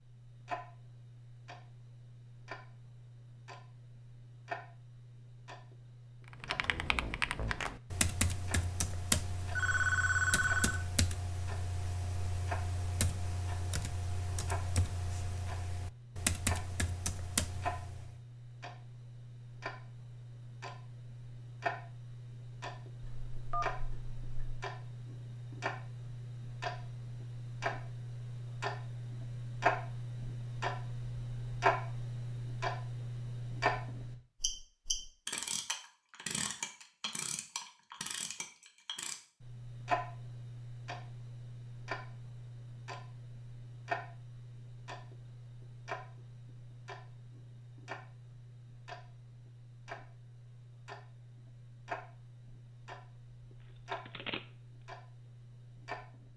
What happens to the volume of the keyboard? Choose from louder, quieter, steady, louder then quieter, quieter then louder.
quieter then louder.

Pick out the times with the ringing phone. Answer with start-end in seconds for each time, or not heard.
9.6-10.8, 23.0-24.6, 53.9-54.4.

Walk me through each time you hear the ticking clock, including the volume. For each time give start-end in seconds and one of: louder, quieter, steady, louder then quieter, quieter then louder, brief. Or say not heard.
0.0-56.3 louder then quieter.